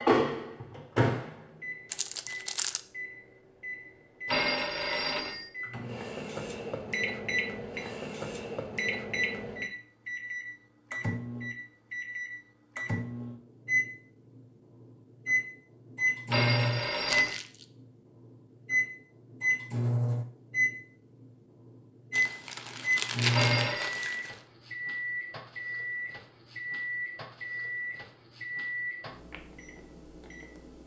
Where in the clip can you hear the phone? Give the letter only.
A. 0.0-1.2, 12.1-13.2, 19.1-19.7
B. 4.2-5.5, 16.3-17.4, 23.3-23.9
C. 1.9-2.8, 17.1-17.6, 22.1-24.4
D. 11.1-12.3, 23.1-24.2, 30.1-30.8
B.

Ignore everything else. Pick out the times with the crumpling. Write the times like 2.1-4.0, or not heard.
1.9-2.8, 17.1-17.6, 22.1-24.4.